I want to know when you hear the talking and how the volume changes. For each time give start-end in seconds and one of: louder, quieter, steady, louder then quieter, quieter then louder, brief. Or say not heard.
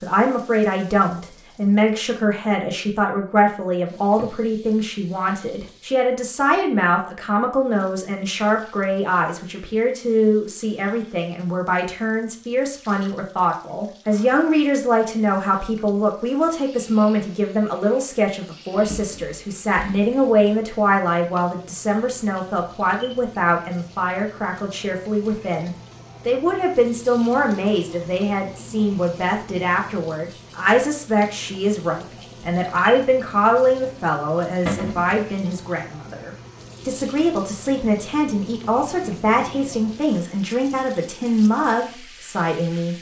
0.0-42.9 steady.